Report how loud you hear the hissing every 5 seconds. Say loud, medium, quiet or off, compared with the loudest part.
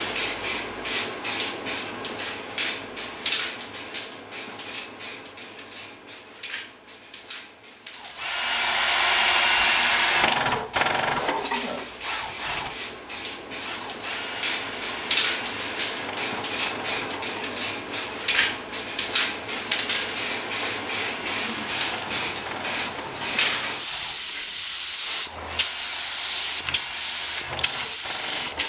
loud, quiet, medium, loud, loud, loud.